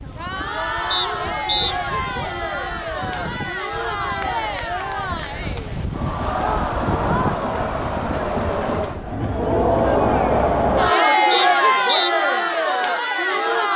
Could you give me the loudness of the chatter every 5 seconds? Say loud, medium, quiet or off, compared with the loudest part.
medium, medium, loud.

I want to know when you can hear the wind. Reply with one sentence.
You can hear the wind from 0.0 to 9.2 s.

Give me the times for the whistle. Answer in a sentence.
You can hear the whistle from 0.9 to 1.8 s and from 11.3 to 12.1 s.